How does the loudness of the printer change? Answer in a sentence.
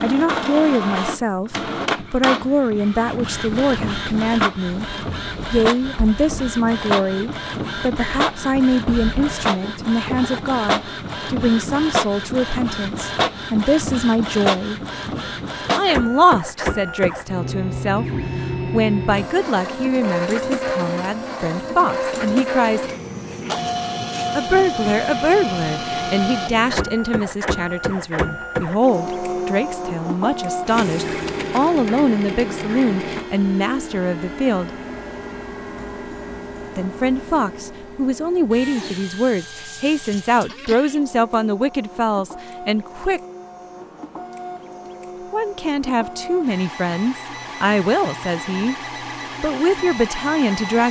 The loudness of the printer goes down.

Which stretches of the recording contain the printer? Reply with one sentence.
The printer can be heard from 0.0 to 50.8 s.